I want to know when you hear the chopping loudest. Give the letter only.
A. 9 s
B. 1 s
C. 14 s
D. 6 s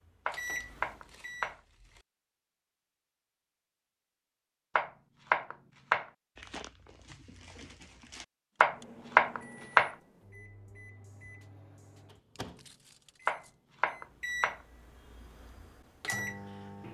A.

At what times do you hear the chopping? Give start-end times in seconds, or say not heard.
0.2-1.6, 4.8-6.1, 8.6-9.9, 13.2-14.6.